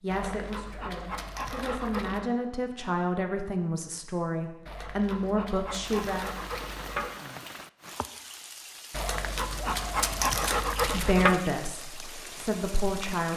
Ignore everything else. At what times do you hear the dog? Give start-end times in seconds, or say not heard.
0.1-2.3, 4.7-7.1, 8.9-11.4.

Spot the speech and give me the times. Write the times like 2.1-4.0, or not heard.
0.0-6.3, 10.8-13.3.